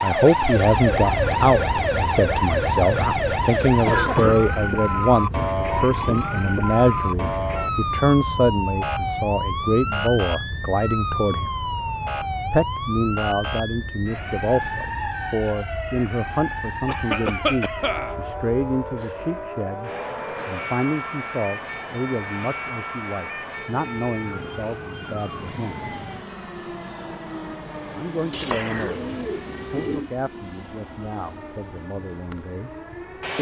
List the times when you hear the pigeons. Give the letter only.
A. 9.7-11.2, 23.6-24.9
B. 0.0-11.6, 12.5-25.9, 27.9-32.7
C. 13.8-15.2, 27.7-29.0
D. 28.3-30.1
D.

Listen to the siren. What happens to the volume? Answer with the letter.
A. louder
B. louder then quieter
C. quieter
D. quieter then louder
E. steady
C.